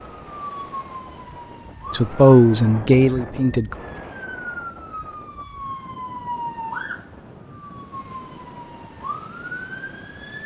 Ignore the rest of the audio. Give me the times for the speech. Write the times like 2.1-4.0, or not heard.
1.9-3.8.